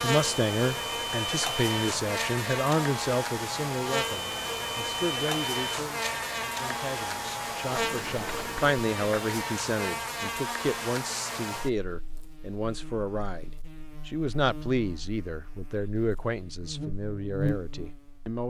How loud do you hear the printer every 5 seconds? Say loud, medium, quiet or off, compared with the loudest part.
loud, loud, off, off.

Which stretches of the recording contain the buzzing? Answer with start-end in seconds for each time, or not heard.
0.0-18.4.